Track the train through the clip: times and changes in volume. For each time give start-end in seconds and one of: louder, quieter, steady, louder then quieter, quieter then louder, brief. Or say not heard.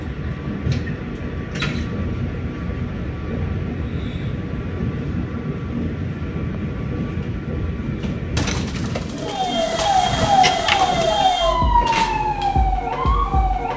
0.0-9.2 steady.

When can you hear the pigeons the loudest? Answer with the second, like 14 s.
11 s.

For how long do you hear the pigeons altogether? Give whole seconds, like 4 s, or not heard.
3 s.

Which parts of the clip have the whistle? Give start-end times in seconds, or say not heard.
not heard.